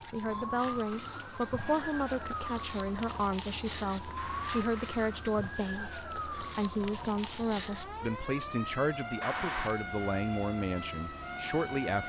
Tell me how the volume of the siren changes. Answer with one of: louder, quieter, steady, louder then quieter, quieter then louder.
steady.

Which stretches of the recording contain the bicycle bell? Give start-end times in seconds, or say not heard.
0.2-2.3, 4.2-5.2, 9.2-9.8.